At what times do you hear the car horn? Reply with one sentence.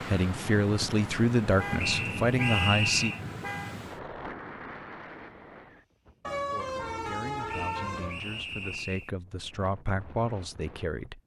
You can hear the car horn from 1.6 to 3.8 s and from 6.2 to 8.2 s.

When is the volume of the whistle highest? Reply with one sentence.
The loudest moment of the whistle is at 3 seconds.